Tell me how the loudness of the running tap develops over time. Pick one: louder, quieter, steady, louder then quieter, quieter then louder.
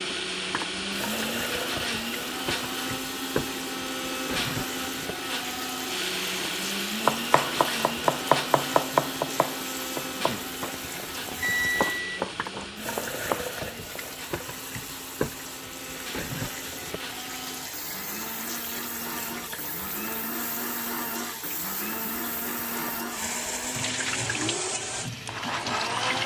steady.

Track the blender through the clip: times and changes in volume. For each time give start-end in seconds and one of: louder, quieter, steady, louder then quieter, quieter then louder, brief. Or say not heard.
0.0-26.2 quieter then louder.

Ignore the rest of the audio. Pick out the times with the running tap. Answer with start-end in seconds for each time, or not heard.
0.0-26.2.